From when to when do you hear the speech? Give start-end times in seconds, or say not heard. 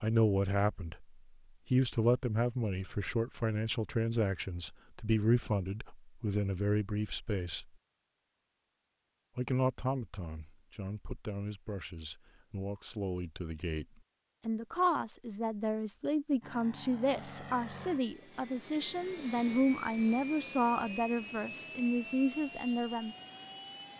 0.0-7.7, 9.3-23.1.